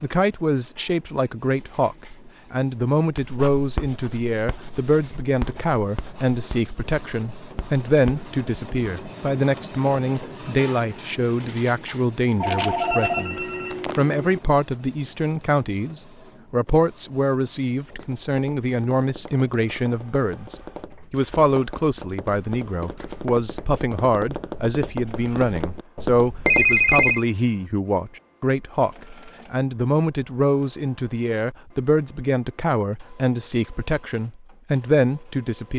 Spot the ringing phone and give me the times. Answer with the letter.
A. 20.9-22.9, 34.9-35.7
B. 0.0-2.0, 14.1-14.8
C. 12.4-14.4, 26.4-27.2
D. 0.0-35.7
C.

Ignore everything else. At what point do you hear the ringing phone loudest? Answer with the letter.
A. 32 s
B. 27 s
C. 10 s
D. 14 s
B.